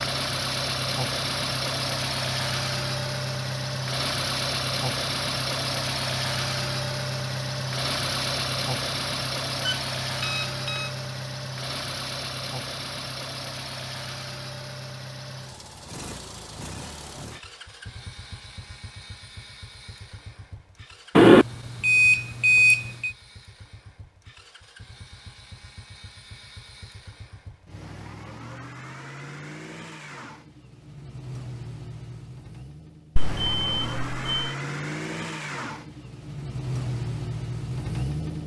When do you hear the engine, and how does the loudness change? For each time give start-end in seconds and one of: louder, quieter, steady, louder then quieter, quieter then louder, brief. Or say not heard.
0.0-38.4 quieter then louder.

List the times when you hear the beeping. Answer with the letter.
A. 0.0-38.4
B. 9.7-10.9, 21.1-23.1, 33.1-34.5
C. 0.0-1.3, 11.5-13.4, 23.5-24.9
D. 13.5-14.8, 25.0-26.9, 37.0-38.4
B.